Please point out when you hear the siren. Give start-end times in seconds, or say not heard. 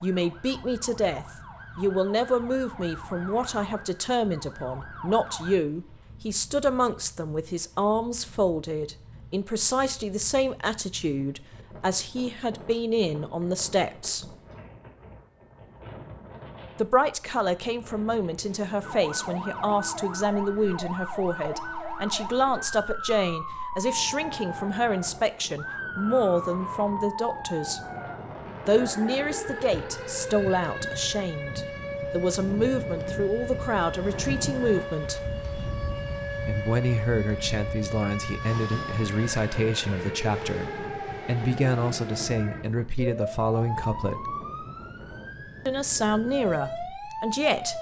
0.0-5.6, 18.8-47.7.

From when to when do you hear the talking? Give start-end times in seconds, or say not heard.
0.0-14.2, 16.8-27.8, 28.6-35.2, 36.5-44.4, 45.6-47.7.